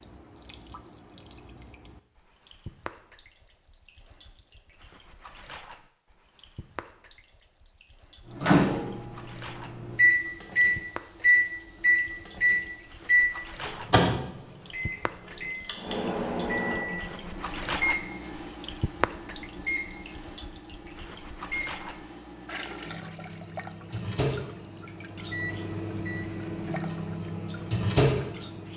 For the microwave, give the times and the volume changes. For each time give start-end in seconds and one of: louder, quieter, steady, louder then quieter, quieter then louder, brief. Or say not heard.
8.3-28.7 quieter then louder.